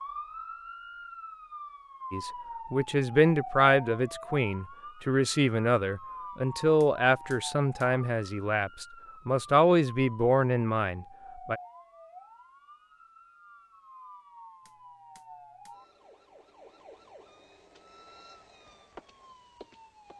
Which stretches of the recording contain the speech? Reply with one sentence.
You can hear the speech from 2.1 to 11.6 s.